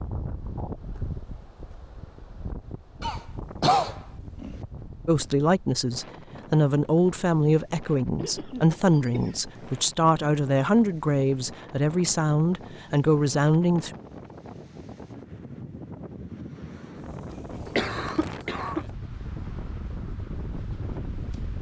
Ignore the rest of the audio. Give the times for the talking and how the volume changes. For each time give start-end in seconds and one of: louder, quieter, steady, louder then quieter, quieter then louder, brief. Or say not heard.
5.0-13.9 steady.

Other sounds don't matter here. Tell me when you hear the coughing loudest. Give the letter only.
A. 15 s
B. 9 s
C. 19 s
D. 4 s
D.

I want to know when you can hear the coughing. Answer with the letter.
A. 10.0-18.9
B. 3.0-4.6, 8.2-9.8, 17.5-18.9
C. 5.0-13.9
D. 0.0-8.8
B.